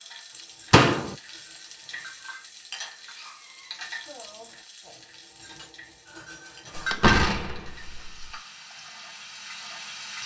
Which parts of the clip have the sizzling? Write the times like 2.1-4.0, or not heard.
0.0-10.2.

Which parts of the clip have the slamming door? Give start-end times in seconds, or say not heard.
0.7-1.1, 6.8-8.2.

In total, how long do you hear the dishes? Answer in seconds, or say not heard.
7 s.